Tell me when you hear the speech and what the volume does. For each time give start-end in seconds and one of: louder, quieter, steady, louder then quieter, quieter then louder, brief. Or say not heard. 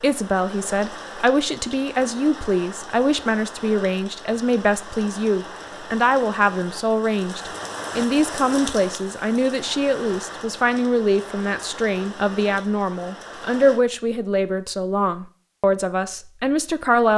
0.0-17.1 steady.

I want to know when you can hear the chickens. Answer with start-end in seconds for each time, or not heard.
not heard.